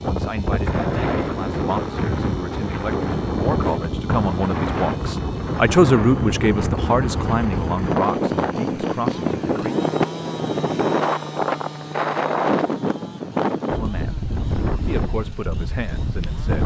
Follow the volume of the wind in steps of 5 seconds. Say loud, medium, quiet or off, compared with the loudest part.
loud, loud, loud, medium.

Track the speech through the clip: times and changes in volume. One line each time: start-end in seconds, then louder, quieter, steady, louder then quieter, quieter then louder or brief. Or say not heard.
0.0-9.7 louder then quieter
13.8-14.2 brief
14.8-16.6 brief.